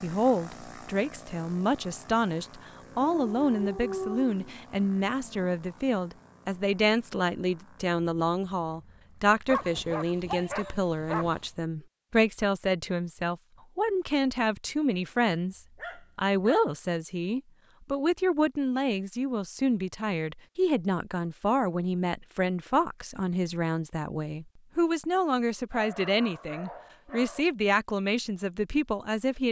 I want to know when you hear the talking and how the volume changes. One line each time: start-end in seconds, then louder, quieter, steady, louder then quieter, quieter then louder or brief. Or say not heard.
0.0-29.4 steady.